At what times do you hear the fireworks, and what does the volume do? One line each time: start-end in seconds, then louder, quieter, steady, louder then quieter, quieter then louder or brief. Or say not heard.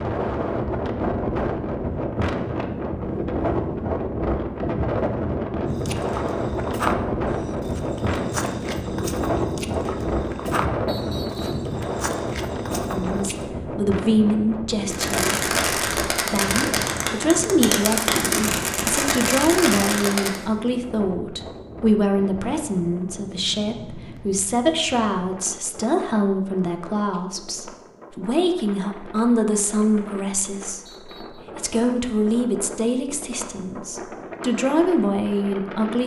14.9-20.4 steady.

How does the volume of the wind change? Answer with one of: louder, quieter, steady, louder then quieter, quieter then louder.
quieter.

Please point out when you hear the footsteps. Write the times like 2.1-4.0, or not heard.
5.8-13.4.